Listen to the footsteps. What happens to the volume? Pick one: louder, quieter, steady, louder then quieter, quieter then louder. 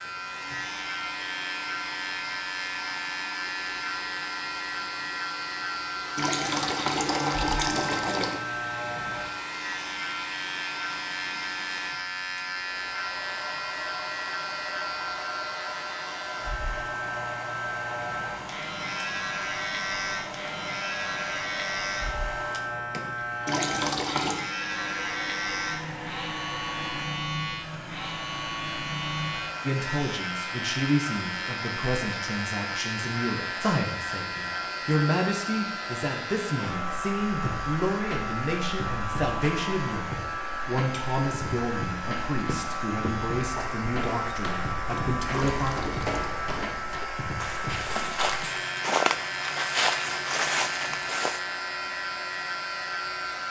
louder.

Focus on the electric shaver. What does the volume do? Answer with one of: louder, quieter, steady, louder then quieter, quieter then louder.
steady.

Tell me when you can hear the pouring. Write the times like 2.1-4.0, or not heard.
6.2-8.4, 23.4-24.4, 45.3-46.2.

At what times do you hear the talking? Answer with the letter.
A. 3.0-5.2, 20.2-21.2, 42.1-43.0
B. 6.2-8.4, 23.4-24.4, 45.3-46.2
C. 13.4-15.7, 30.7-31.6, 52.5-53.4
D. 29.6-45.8
D.